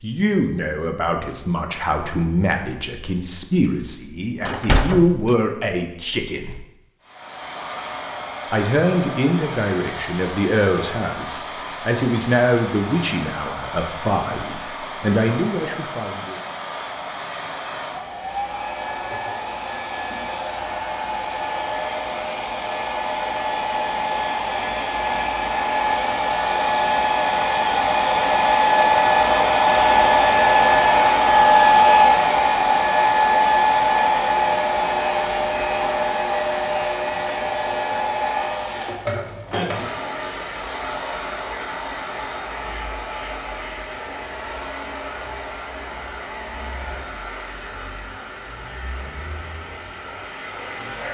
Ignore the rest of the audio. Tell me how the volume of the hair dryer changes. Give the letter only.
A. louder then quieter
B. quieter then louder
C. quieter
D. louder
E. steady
A.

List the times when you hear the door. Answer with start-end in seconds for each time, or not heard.
4.4-5.3.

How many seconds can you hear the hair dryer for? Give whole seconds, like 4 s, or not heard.
44 s.